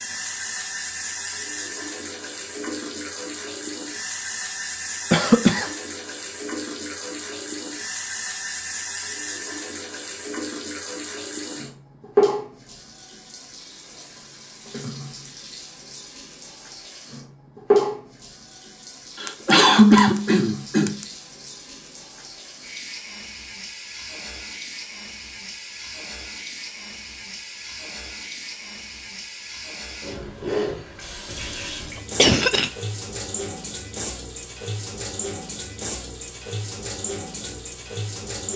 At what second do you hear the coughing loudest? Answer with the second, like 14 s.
20 s.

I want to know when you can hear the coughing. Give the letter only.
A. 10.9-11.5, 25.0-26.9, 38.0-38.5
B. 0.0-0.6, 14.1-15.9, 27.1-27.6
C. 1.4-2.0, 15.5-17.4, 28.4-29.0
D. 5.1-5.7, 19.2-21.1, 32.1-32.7
D.